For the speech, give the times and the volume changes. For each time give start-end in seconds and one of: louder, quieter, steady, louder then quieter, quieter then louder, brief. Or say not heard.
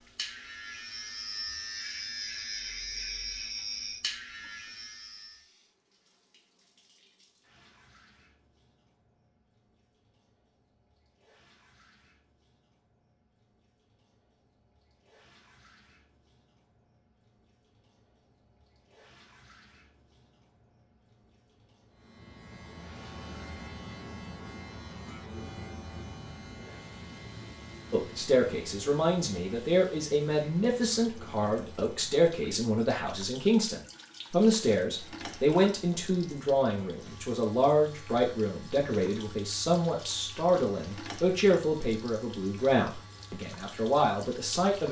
27.9-44.8 steady.